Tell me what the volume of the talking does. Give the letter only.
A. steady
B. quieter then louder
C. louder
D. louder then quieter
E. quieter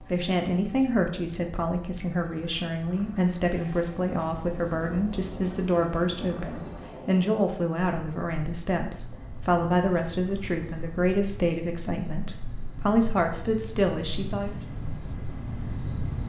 A.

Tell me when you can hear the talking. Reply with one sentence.
You can hear the talking from 0.1 to 14.6 s.